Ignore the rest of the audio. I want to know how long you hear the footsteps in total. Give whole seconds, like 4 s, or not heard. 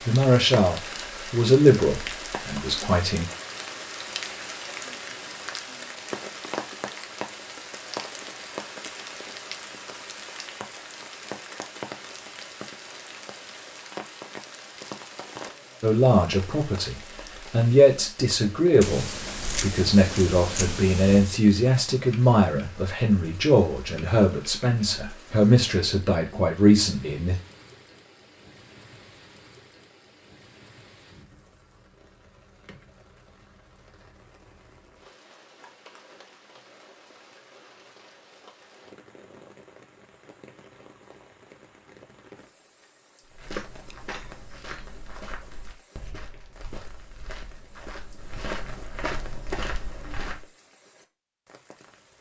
7 s.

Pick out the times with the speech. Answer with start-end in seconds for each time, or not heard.
0.0-3.2, 15.8-27.4.